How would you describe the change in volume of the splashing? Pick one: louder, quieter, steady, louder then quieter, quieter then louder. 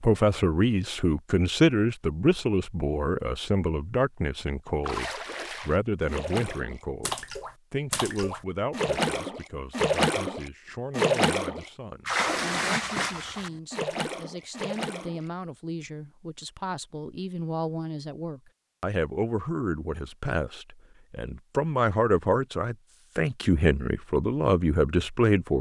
louder then quieter.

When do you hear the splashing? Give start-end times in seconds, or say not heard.
4.8-15.2.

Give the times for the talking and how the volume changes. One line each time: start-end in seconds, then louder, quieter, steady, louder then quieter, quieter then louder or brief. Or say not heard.
0.0-25.5 quieter then louder.